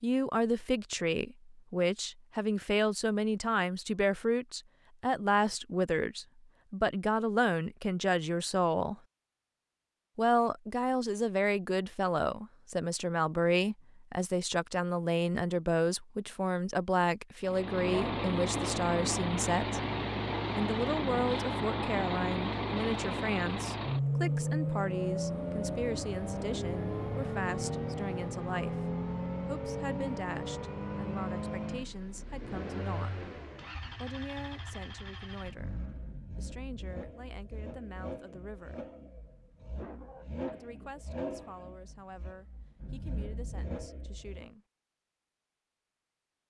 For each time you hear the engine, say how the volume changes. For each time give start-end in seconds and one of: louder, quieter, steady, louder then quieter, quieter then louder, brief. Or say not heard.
17.4-44.5 quieter.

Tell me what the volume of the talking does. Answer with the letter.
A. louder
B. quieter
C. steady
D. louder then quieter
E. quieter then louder
B.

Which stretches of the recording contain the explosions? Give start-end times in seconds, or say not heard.
not heard.